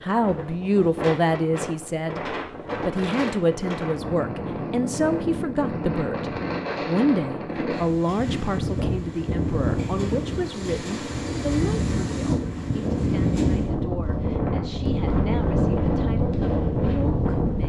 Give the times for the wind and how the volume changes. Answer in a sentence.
The wind can be heard from 0.0 to 17.6 s, getting louder.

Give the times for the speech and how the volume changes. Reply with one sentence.
The speech can be heard from 0.0 to 17.6 s, getting quieter.